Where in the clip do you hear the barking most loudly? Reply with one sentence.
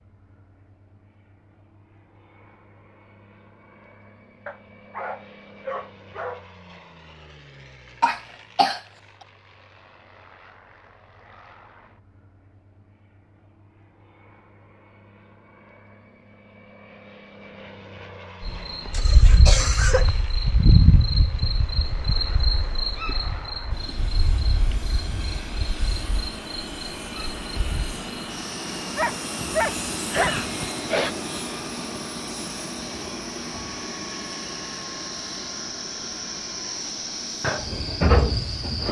The volume of the barking peaks at 30 seconds.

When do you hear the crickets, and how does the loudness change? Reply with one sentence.
You can hear the crickets from 18.4 to 38.8 s, getting quieter then louder.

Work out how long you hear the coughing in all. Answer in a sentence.
You can hear the coughing for 3 seconds altogether.